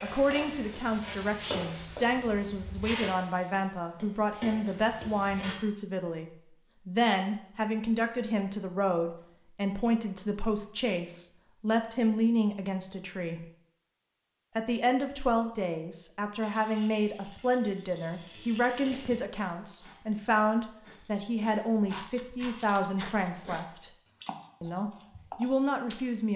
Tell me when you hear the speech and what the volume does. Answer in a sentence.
The speech can be heard from 0.0 to 13.4 s, at a steady volume; from 14.6 to 23.9 s, at a steady volume; and briefly from 24.6 to 26.3 s.